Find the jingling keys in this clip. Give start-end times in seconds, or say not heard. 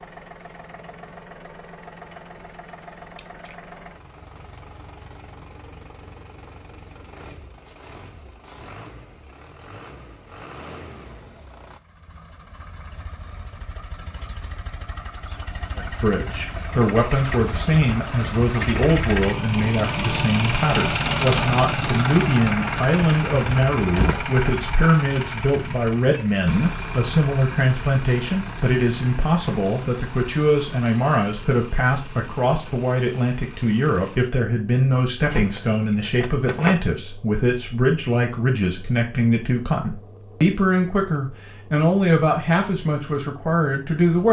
3.1-3.8, 23.8-24.2, 35.3-36.8.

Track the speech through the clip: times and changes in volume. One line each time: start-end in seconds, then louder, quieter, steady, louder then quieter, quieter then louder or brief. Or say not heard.
15.8-44.2 steady.